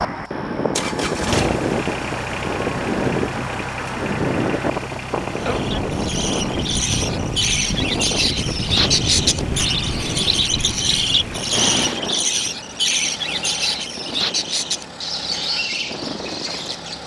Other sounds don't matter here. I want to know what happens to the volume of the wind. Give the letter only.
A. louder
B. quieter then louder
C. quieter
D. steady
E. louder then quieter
C.